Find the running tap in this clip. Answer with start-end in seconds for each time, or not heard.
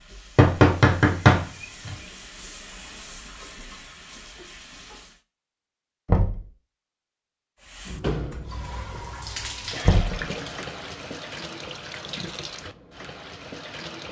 0.0-5.2, 7.6-14.0.